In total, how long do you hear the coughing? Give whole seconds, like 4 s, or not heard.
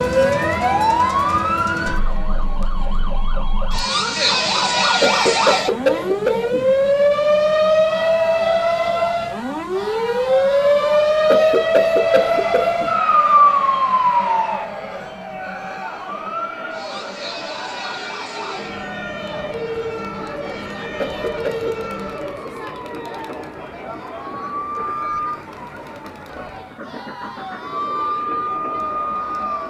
4 s.